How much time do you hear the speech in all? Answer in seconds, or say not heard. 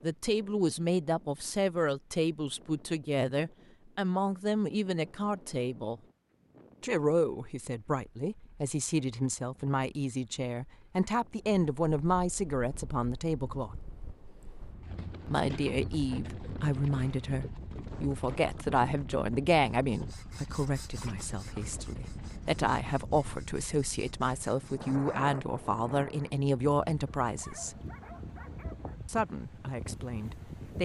27 s.